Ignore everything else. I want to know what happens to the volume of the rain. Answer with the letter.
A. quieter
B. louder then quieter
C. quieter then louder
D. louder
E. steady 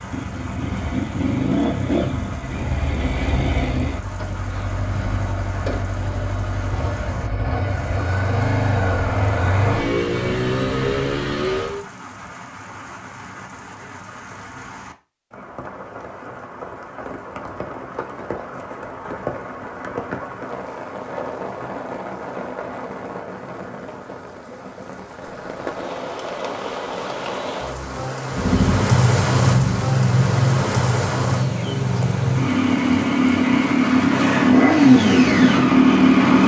D.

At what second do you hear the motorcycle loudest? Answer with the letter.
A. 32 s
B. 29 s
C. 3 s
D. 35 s
D.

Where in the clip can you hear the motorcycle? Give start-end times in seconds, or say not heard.
0.0-11.8, 28.3-36.4.